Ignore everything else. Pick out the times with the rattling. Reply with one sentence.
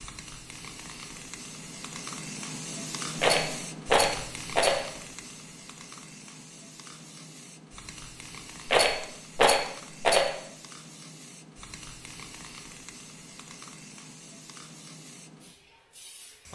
You can hear the rattling from 3.1 to 4.8 s and from 8.7 to 10.3 s.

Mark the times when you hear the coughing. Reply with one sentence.
You can't hear the coughing here.